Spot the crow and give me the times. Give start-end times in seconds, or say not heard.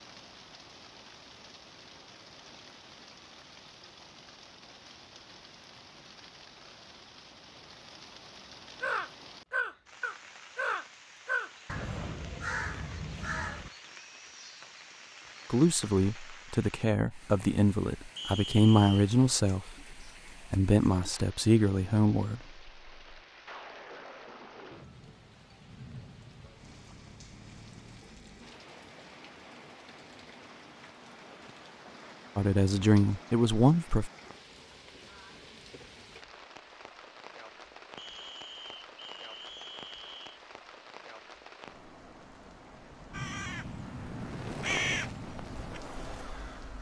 8.8-13.7, 43.1-46.7.